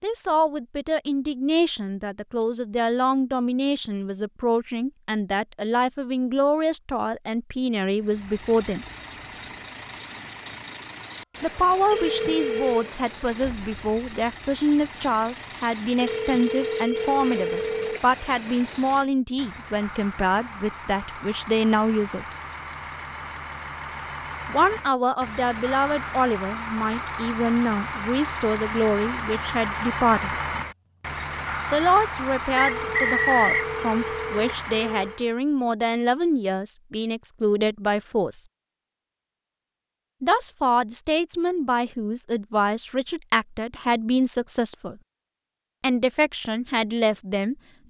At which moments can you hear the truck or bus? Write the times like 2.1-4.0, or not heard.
8.0-35.3.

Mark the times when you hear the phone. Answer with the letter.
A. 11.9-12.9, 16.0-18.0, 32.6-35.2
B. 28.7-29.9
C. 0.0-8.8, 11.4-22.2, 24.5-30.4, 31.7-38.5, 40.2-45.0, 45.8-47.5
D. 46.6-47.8
A.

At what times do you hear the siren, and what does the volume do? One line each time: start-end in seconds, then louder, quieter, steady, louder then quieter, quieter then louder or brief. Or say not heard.
not heard.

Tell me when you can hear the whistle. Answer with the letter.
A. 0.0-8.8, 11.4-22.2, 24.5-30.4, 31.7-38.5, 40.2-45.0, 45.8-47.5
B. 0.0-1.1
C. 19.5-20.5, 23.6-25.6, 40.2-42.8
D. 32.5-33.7
D.